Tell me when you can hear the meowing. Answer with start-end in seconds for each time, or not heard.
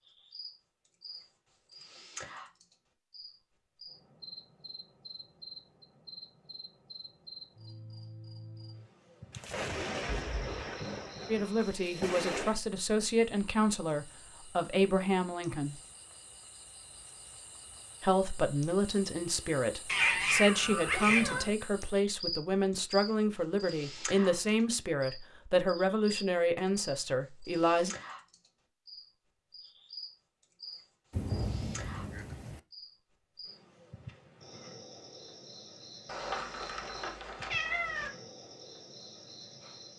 10.2-10.8, 19.9-21.5, 36.0-38.1.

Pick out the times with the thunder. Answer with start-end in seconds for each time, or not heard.
9.3-12.6, 31.1-32.6.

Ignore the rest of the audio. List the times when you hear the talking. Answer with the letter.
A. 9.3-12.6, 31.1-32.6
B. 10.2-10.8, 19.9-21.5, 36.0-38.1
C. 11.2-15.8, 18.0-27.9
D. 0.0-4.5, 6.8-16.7
C.